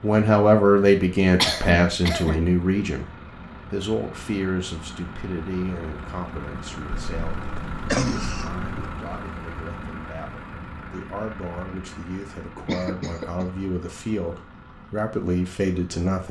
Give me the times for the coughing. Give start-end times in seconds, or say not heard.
1.4-2.5, 6.9-8.7, 12.6-13.4.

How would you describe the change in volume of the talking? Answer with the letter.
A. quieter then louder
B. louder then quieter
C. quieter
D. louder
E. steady
A.